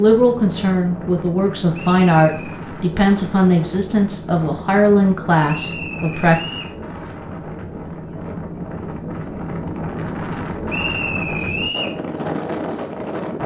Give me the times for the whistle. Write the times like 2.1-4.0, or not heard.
1.7-2.5, 5.5-6.8, 10.7-11.9.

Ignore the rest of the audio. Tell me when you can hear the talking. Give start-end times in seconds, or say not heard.
0.0-6.3.